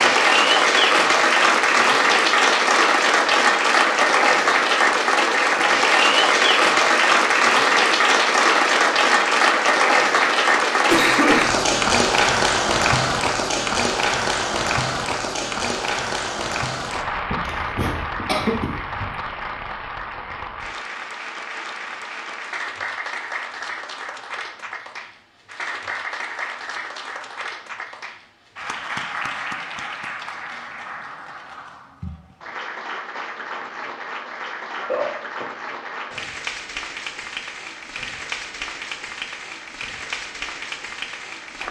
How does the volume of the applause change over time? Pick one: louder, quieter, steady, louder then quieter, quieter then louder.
quieter.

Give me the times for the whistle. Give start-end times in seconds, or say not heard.
not heard.